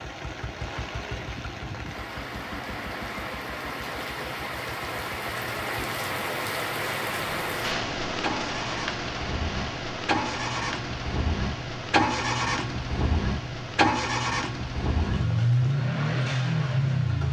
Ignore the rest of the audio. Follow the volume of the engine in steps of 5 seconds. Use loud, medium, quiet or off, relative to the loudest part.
quiet, quiet, loud, loud.